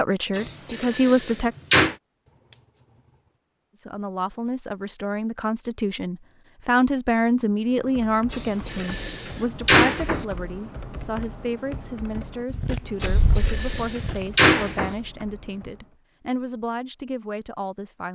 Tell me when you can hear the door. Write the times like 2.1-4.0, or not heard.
0.3-1.9, 8.3-10.2, 13.0-14.9.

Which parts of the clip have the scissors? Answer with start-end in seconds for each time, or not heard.
12.5-14.2.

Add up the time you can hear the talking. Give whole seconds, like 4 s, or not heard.
16 s.